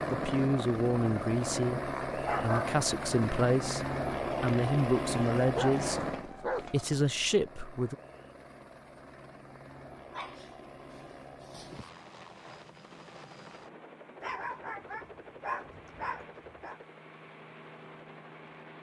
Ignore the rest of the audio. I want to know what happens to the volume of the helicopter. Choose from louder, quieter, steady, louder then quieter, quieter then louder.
quieter.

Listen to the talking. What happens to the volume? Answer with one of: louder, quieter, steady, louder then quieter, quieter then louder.
steady.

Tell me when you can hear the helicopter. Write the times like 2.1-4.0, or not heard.
0.0-18.7.